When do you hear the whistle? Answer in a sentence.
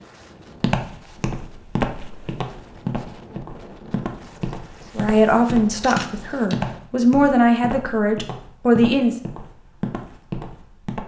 You can't hear the whistle here.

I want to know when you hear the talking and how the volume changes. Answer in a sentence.
The talking can be heard from 5.0 to 9.2 s, getting quieter then louder.